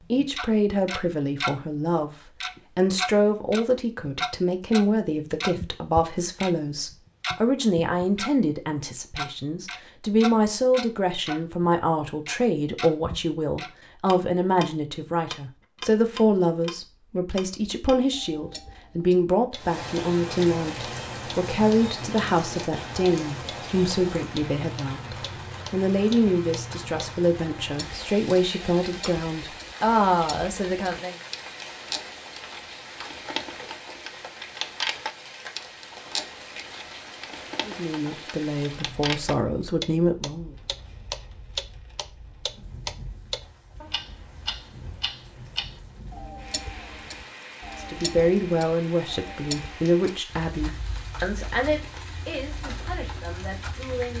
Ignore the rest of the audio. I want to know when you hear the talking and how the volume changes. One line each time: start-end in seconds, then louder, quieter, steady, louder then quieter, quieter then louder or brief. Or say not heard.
0.1-31.1 steady
37.6-40.5 brief
47.9-54.1 quieter.